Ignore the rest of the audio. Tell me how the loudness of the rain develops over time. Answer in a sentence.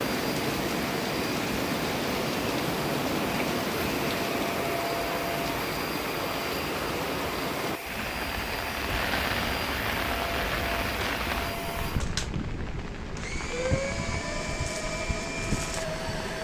The loudness of the rain goes down.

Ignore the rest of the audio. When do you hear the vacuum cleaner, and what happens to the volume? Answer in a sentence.
The vacuum cleaner can be heard from 0.0 to 16.3 s, at a steady volume.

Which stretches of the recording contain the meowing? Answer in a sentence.
You can't hear the meowing here.